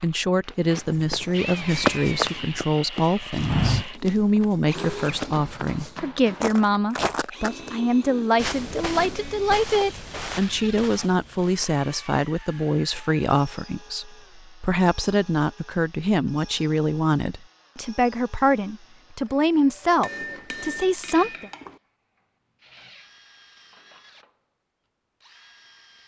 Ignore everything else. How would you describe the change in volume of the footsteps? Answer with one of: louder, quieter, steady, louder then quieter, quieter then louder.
quieter.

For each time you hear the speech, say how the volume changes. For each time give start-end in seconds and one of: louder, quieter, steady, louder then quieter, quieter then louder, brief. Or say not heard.
0.0-21.5 steady.